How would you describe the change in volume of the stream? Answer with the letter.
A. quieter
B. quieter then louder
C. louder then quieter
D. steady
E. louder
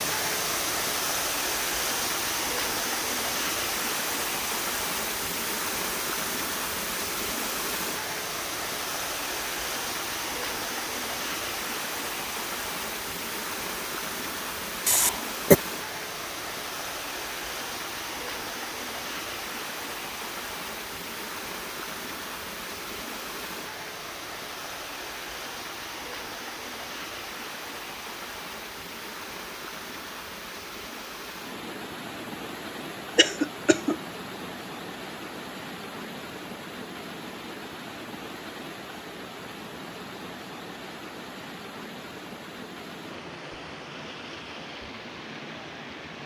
A.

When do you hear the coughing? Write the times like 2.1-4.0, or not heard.
14.8-15.6, 33.1-34.0.